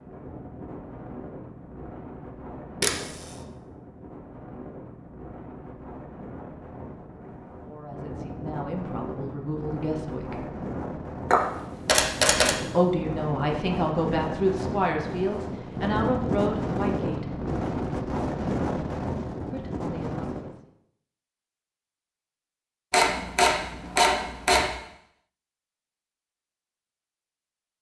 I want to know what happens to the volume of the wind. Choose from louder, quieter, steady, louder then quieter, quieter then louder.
louder.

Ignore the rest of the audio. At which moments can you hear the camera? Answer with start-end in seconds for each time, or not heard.
2.8-3.2, 11.3-12.6, 22.9-24.7.